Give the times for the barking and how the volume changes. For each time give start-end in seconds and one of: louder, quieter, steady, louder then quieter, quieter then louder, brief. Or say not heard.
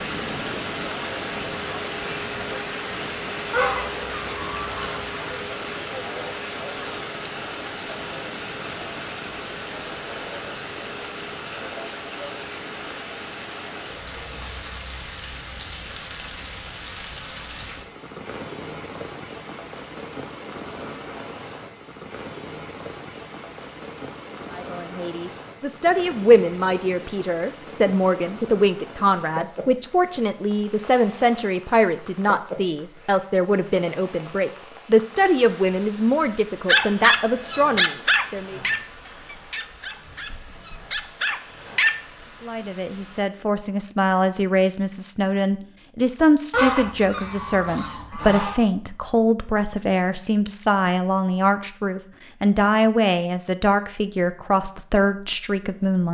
36.6-42.0 quieter then louder.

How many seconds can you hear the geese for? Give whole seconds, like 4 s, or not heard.
4 s.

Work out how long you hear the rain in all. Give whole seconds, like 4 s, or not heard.
43 s.